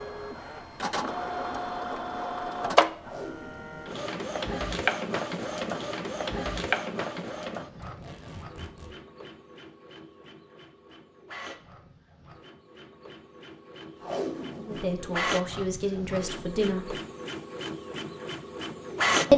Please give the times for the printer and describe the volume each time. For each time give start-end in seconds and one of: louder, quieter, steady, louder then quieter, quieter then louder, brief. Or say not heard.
0.0-19.3 quieter then louder.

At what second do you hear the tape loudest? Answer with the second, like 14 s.
14 s.